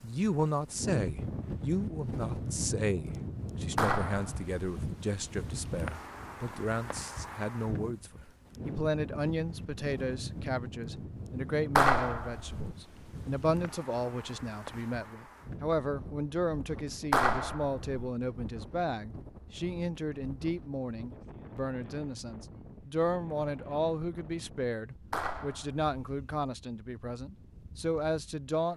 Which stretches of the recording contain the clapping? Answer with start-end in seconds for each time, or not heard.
3.8-4.5, 11.8-12.8, 17.1-18.0, 25.1-25.9.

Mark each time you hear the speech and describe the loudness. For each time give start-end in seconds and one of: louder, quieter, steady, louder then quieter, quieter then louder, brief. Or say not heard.
0.0-28.7 steady.